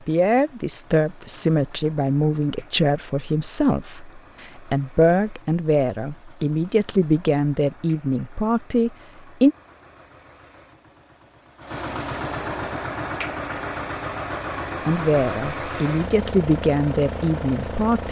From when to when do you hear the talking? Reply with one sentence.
The talking can be heard from 0.1 to 9.6 s and from 14.8 to 18.0 s.